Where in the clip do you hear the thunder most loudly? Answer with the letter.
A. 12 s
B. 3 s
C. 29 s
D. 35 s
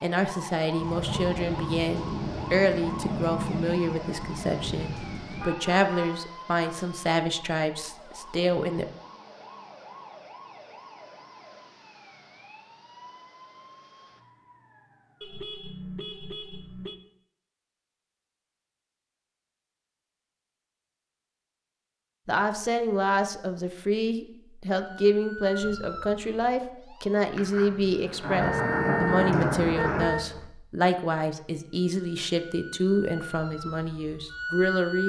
C.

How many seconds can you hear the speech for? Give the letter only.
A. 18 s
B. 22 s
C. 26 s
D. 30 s
B.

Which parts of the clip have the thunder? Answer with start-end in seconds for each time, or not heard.
0.8-5.5, 27.4-30.1.